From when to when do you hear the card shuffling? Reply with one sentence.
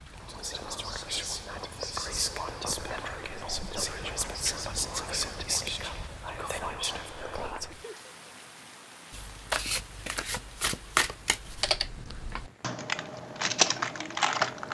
You can hear the card shuffling from 9.1 to 11.8 s.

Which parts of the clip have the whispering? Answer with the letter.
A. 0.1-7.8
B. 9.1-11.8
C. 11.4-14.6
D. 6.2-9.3
A.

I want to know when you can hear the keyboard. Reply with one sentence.
You can hear the keyboard from 11.4 to 14.6 s.